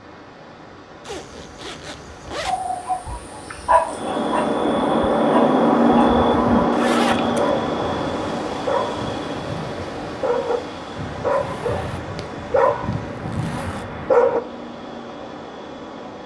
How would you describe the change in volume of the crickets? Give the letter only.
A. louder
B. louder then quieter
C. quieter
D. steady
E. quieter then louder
C.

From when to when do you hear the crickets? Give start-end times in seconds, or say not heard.
3.9-16.2.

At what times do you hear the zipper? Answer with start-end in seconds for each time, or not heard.
1.0-2.6, 6.7-7.5, 11.4-12.3, 13.2-13.8.